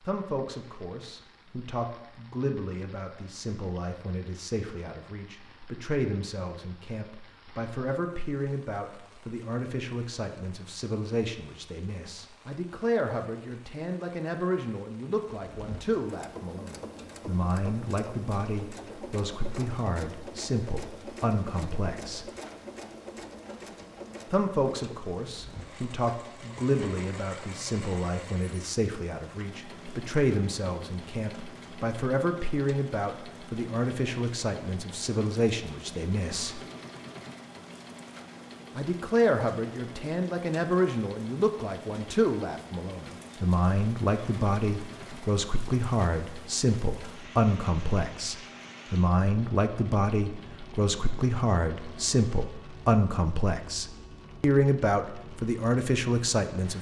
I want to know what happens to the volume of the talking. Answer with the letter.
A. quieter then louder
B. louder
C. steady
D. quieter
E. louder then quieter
B.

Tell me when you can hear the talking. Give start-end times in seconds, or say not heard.
0.1-22.2, 24.3-36.6, 38.8-56.7.